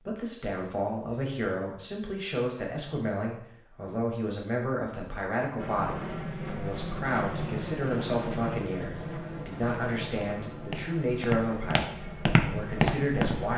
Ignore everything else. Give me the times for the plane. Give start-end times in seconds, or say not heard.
5.5-13.5.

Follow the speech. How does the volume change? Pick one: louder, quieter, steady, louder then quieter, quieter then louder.
steady.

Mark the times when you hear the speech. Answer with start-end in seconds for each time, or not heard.
0.0-13.5.